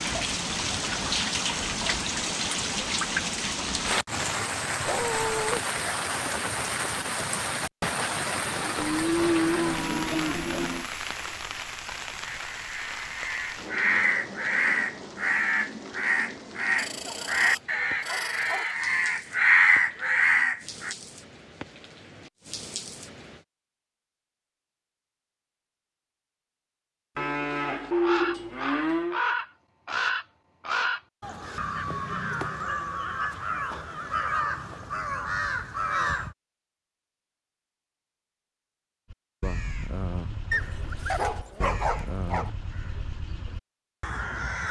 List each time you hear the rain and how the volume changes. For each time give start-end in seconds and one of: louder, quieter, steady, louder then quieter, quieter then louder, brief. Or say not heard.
0.0-23.4 quieter.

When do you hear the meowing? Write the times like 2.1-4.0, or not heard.
not heard.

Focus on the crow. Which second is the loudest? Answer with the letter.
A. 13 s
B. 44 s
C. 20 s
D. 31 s
C.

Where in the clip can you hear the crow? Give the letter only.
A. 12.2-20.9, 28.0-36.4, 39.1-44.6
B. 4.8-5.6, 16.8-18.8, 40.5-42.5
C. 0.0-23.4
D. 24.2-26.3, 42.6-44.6
A.